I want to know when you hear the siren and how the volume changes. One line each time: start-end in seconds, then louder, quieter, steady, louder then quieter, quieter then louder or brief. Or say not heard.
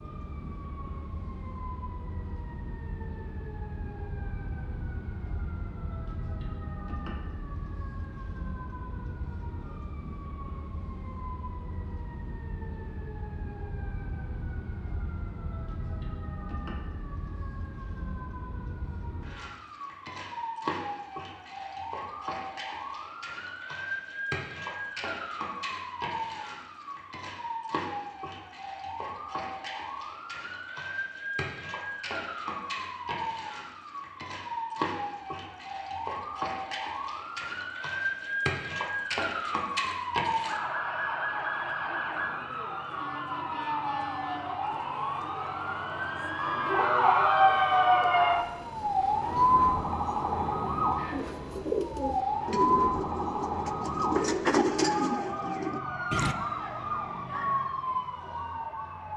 0.0-59.1 louder.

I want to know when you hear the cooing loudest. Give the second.
55 s.